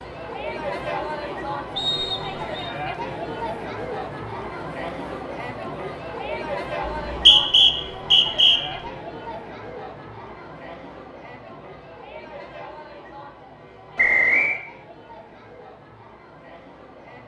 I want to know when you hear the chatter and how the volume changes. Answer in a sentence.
You can hear the chatter from 0.0 to 17.2 s, getting quieter.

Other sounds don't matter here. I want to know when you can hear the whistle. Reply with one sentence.
The whistle can be heard from 1.8 to 2.7 s, from 6.8 to 8.6 s and from 13.9 to 14.6 s.